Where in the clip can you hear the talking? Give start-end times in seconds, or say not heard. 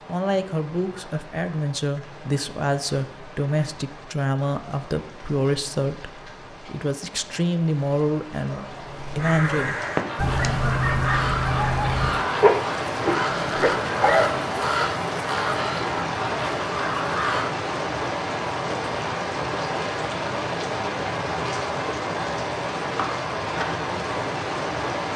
0.1-9.9.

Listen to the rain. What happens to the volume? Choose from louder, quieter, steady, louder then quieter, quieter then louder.
louder.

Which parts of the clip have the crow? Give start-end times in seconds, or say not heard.
9.2-17.5.